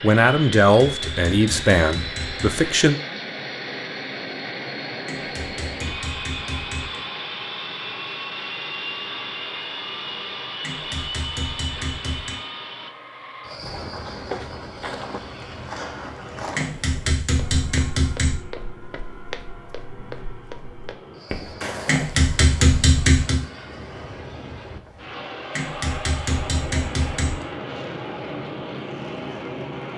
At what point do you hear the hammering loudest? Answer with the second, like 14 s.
23 s.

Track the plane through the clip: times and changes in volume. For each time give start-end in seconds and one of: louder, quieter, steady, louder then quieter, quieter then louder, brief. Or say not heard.
0.0-29.9 quieter then louder.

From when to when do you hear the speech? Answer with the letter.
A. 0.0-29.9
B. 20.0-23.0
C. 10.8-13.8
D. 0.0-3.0
D.